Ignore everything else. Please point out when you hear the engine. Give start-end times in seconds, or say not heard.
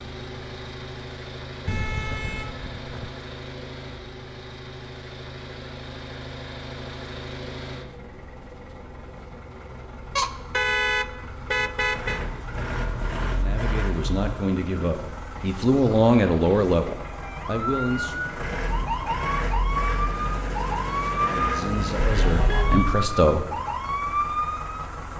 0.0-25.1.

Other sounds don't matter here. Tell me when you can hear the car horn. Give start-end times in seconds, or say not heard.
1.6-3.1, 10.2-12.2, 21.9-22.9.